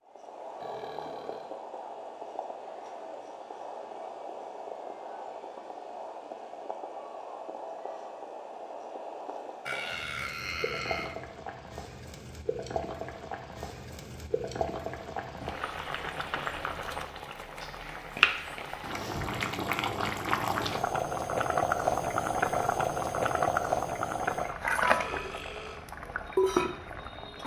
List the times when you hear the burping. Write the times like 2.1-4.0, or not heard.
0.6-1.6, 9.7-11.2, 25.0-25.9.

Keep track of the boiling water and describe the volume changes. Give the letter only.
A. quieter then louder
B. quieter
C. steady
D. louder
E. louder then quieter
D.